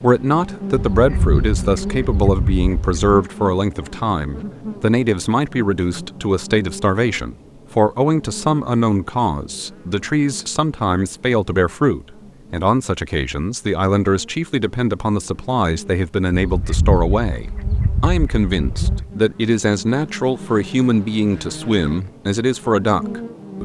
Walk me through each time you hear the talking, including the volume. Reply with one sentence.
The talking can be heard from 0.0 to 23.6 s, at a steady volume.